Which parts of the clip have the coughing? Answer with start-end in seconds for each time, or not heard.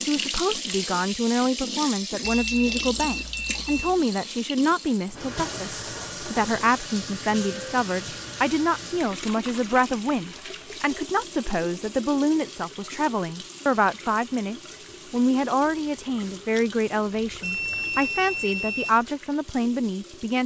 not heard.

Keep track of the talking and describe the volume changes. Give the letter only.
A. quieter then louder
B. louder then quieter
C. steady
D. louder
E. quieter
C.